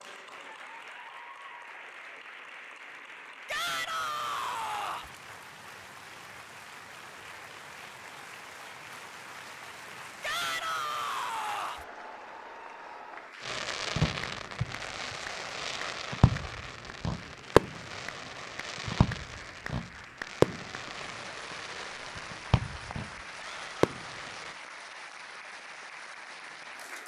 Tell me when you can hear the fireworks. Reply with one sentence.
You can hear the fireworks from 13.4 to 24.6 s.